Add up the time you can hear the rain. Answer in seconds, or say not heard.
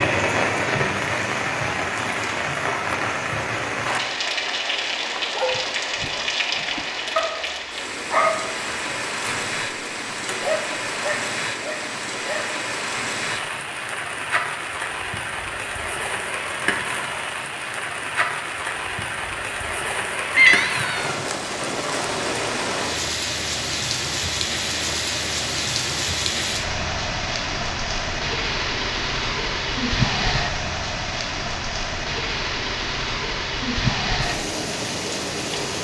36 s.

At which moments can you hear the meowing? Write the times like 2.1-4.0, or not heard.
20.3-21.2.